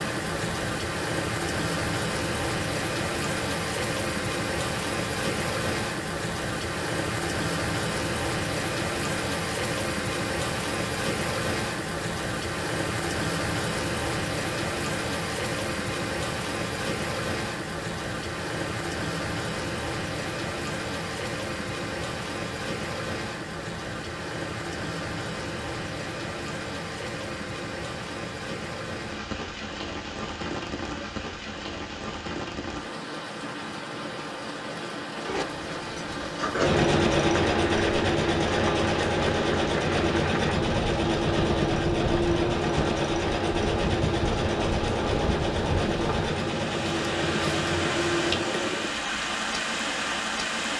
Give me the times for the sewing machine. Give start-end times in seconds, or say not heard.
35.2-49.0.